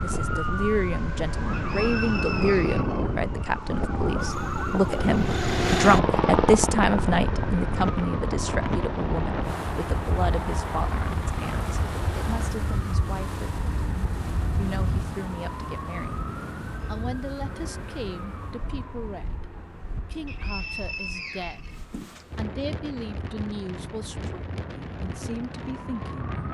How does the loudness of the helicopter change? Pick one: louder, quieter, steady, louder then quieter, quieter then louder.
quieter.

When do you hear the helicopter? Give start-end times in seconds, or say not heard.
4.2-12.6.